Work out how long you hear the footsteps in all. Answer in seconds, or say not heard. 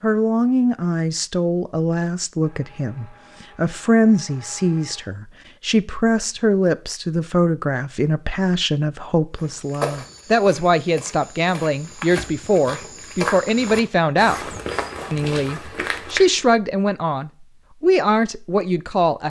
7 s.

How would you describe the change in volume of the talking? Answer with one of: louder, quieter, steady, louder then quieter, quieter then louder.
steady.